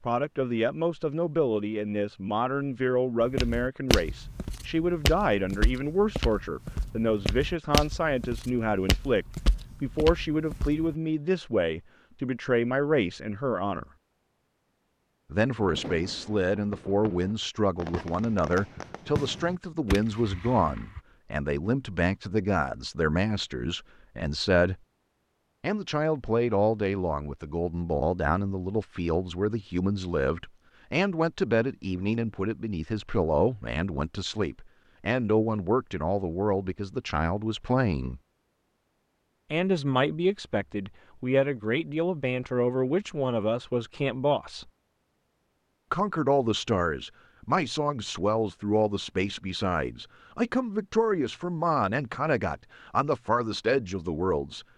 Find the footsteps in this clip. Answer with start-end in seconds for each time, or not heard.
3.2-10.9.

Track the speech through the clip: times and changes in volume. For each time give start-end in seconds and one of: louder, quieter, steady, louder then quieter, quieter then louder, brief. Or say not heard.
0.0-13.8 steady
15.3-24.8 steady
25.6-38.2 steady
39.5-44.6 steady
45.9-54.6 steady.